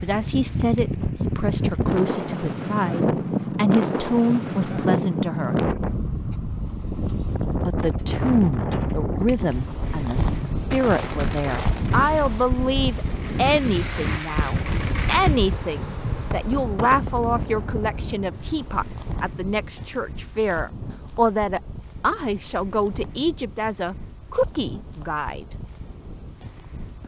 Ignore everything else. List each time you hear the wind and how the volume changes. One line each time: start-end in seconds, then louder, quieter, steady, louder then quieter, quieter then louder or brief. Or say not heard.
0.0-27.0 quieter.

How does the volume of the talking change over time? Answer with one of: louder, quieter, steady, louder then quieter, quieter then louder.
steady.